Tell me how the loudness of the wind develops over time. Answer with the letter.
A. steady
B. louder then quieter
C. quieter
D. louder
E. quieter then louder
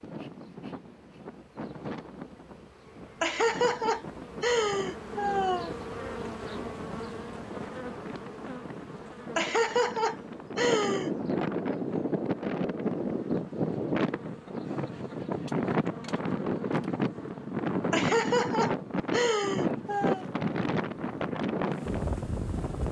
D.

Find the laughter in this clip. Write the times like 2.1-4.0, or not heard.
3.2-5.8, 9.3-11.1, 17.9-20.2.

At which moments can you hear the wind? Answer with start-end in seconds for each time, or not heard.
0.0-22.8.